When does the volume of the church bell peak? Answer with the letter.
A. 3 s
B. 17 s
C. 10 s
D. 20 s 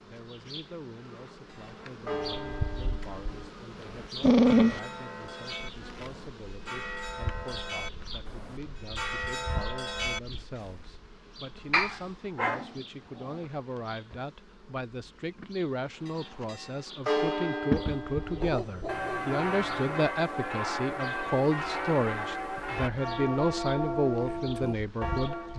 B.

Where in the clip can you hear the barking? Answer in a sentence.
The barking can be heard from 4.2 to 4.8 s, from 11.7 to 13.3 s and from 18.4 to 19.9 s.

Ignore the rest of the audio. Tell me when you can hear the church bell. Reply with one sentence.
The church bell can be heard from 1.4 to 10.7 s and from 16.1 to 25.5 s.